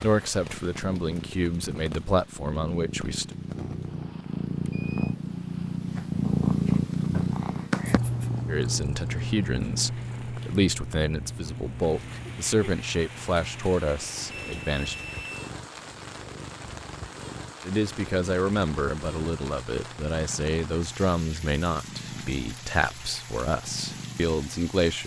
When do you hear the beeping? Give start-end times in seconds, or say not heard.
3.8-5.2, 14.3-15.4.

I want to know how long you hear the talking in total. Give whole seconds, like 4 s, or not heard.
17 s.